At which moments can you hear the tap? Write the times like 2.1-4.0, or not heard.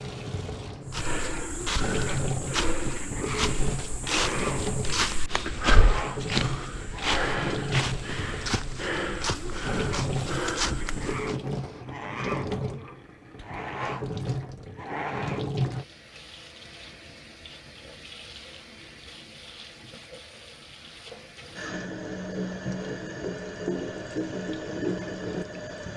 0.0-25.9.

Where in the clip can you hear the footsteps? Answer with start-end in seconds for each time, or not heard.
0.9-11.3.